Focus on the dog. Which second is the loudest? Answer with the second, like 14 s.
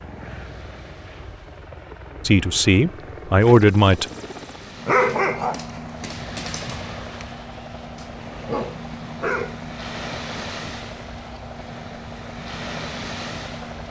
5 s.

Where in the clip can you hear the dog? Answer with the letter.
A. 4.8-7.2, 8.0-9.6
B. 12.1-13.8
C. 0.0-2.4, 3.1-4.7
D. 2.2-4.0
A.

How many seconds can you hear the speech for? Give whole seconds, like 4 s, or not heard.
2 s.